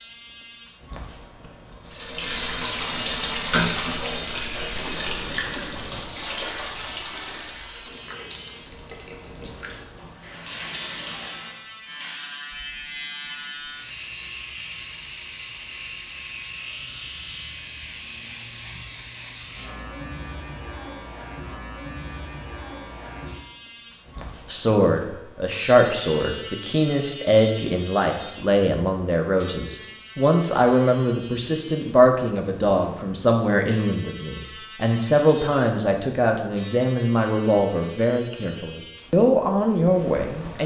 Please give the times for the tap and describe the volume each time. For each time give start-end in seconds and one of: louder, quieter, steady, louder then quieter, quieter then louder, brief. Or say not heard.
1.9-11.7 quieter.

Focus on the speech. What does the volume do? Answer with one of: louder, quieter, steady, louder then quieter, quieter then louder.
steady.